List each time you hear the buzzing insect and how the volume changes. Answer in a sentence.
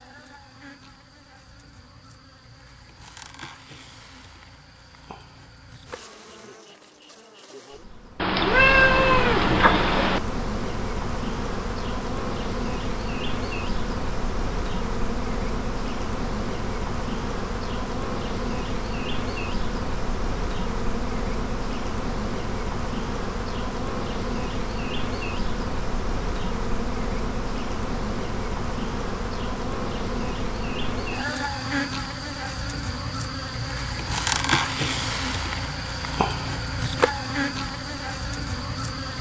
You can hear the buzzing insect from 0.0 to 39.1 s, getting louder.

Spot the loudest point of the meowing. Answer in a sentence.
The loudest moment of the meowing is at 9 seconds.